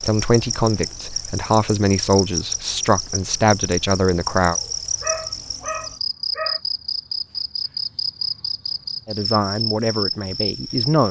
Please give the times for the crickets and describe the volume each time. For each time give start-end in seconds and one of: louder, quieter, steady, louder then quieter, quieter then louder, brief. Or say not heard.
0.0-11.0 steady.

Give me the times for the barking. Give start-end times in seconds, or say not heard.
4.5-6.6.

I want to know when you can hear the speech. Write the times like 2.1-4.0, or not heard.
0.0-4.5, 9.1-11.0.